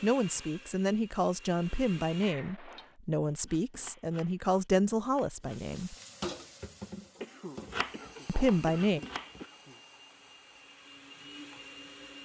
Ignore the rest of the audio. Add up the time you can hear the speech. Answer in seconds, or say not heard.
7 s.